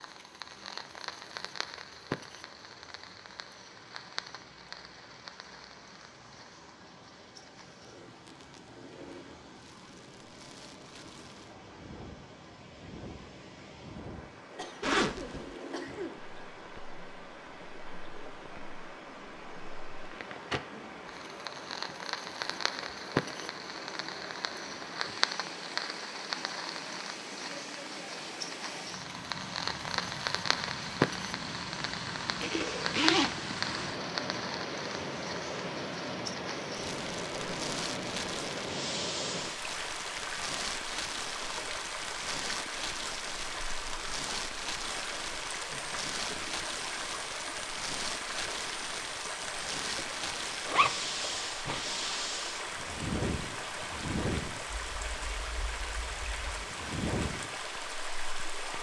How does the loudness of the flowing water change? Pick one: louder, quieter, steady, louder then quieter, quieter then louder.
louder.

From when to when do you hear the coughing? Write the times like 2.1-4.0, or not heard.
14.6-16.1, 45.6-46.5.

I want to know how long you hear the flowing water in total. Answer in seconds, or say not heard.
59 s.